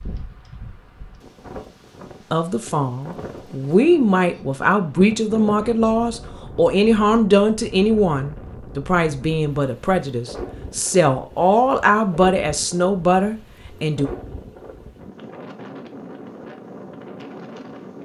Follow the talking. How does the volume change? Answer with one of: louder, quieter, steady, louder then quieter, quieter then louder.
steady.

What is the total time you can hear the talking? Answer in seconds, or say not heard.
12 s.